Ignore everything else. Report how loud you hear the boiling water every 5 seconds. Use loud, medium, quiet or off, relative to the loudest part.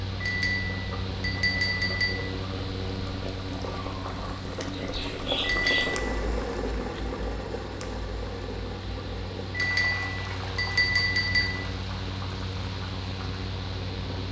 medium, loud, medium.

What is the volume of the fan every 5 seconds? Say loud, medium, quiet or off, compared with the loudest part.
loud, medium, loud.